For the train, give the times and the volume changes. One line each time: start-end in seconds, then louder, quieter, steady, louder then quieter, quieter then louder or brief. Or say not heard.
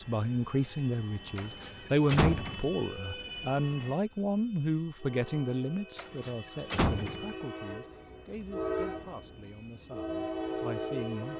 0.0-11.3 louder.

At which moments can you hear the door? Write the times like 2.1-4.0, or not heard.
1.4-2.7, 6.0-7.3.